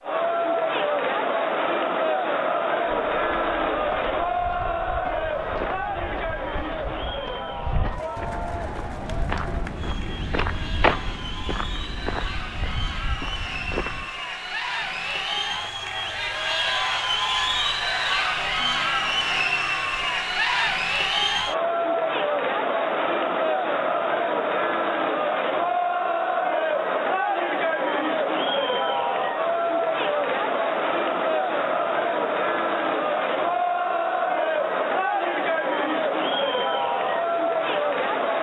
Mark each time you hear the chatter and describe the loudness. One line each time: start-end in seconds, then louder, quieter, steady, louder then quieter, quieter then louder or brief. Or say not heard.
0.0-38.3 quieter then louder.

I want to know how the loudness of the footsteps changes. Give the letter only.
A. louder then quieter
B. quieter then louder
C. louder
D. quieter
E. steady
A.